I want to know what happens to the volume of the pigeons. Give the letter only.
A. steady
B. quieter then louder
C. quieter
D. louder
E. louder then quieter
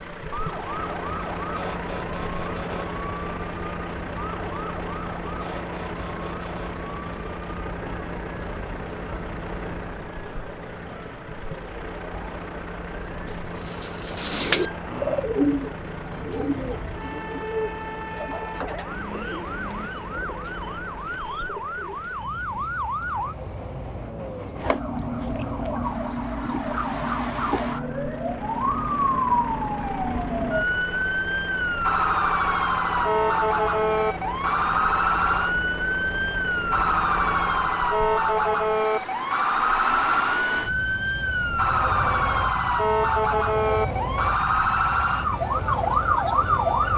C.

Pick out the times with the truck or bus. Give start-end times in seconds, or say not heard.
0.0-46.9.